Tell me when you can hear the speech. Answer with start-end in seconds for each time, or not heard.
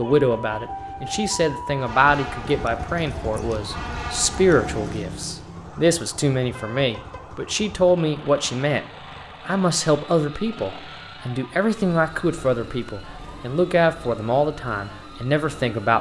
0.0-8.8, 9.4-15.9.